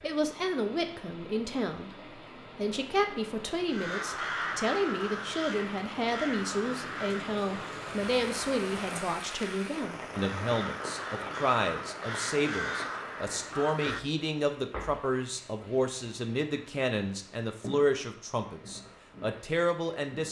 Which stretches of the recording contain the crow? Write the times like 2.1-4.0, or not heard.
3.7-14.0.